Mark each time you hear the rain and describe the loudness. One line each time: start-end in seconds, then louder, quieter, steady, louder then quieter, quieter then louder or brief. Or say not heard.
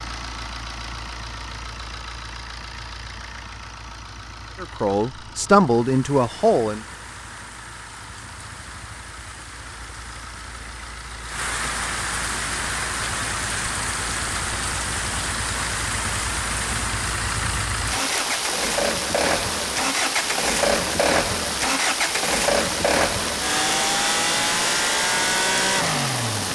5.8-26.5 louder.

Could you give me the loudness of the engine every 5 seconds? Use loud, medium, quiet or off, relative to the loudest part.
quiet, quiet, quiet, medium, loud, loud.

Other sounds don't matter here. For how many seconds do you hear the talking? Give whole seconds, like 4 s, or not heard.
2 s.